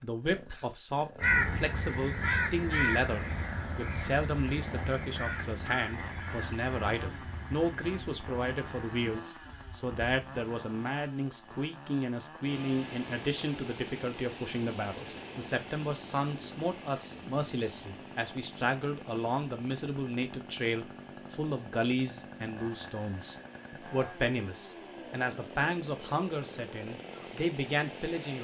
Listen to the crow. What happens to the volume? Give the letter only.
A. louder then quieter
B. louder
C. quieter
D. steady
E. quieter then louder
C.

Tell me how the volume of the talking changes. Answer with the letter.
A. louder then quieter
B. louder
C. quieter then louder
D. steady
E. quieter
D.